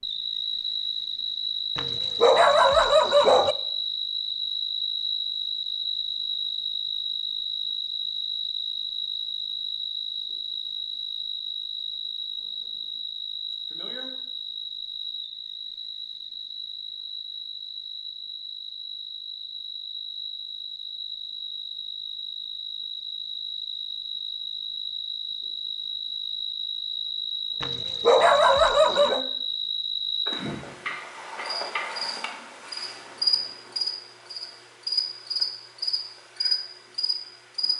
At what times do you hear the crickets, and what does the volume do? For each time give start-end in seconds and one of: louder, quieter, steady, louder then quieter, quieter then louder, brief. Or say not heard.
0.0-37.7 quieter then louder.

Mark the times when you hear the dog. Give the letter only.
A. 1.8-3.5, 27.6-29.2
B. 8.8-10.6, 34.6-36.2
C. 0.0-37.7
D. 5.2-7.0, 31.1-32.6
A.